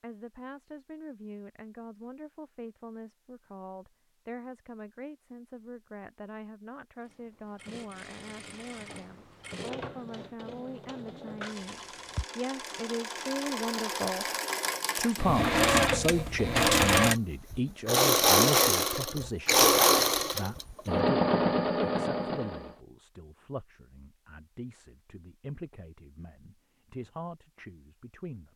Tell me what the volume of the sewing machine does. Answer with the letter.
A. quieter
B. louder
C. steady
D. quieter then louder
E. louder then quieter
B.